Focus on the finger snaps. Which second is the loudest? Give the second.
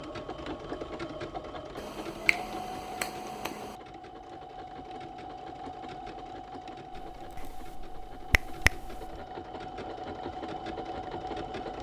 9 s.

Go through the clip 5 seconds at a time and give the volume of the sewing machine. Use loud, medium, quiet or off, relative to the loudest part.
loud, medium, loud.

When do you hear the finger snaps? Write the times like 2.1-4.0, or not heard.
1.8-3.8, 6.9-9.2.